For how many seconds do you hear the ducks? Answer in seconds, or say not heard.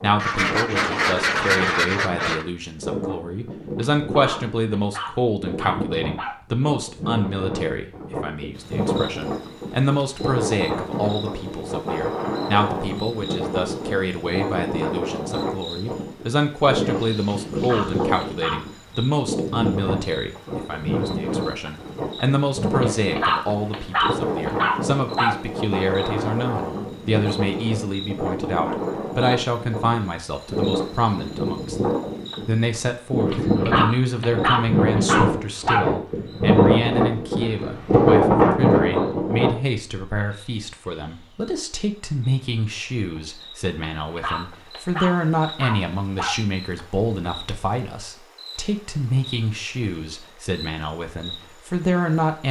2 s.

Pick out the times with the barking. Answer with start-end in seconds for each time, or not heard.
3.9-6.4, 17.2-18.6, 22.8-25.4, 33.2-35.9, 44.0-46.4.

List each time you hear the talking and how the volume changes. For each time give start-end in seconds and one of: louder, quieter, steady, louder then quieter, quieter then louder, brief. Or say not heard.
0.0-52.4 steady.